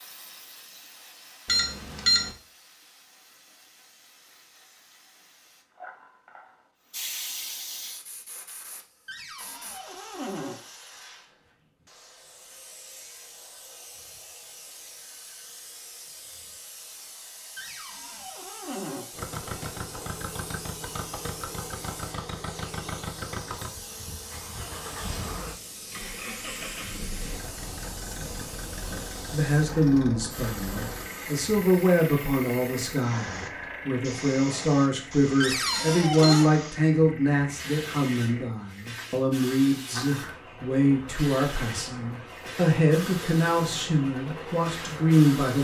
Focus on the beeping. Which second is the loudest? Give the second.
2 s.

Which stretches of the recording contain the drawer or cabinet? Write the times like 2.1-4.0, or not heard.
9.1-10.6, 17.6-19.1, 35.4-36.5.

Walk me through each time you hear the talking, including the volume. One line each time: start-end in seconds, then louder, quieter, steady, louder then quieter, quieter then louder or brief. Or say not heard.
29.3-45.5 steady.